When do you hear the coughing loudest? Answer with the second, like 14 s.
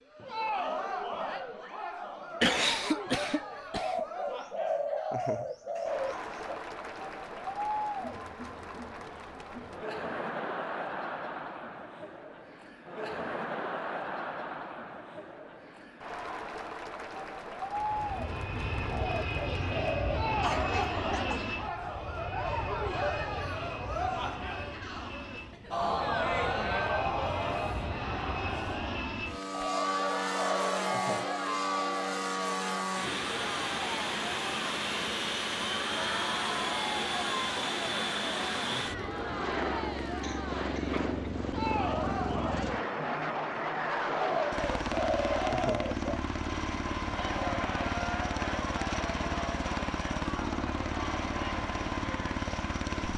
3 s.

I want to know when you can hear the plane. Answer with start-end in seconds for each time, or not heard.
17.8-53.1.